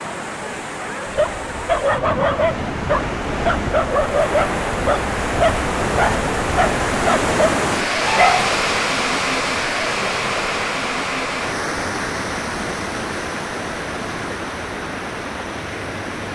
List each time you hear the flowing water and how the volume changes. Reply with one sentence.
The flowing water can be heard from 0.0 to 16.3 s, getting louder then quieter.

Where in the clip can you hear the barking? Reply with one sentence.
You can hear the barking from 1.1 to 8.5 s.